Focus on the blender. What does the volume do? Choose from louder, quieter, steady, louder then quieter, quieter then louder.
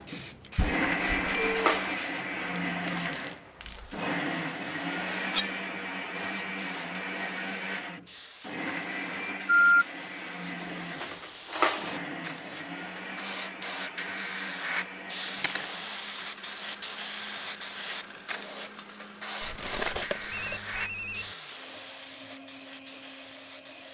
quieter.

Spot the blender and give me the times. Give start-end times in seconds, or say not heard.
0.0-23.8.